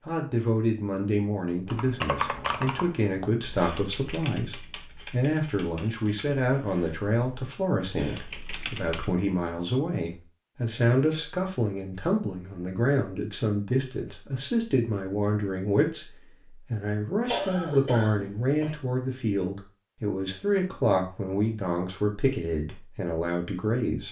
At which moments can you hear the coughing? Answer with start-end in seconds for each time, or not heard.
17.2-18.8.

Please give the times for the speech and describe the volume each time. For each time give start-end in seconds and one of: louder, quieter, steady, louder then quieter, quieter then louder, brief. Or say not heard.
0.1-24.0 steady.